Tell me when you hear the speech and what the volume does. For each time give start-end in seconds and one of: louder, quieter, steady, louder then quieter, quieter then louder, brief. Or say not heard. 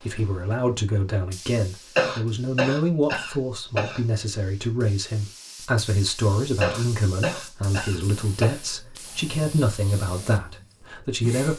0.0-11.5 steady.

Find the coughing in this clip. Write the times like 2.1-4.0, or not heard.
1.9-4.0, 6.6-8.6.